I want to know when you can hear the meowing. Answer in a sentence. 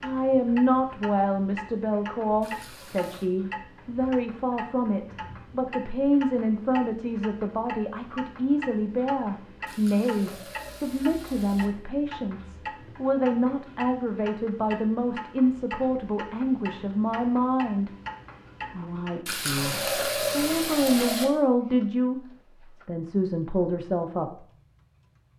The meowing can't be heard in this clip.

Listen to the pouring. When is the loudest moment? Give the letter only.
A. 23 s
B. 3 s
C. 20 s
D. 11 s
C.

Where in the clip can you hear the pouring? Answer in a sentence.
The pouring can be heard from 2.4 to 3.3 s, from 9.7 to 11.7 s and from 19.2 to 21.2 s.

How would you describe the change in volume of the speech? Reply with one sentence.
The volume of the speech stays about the same.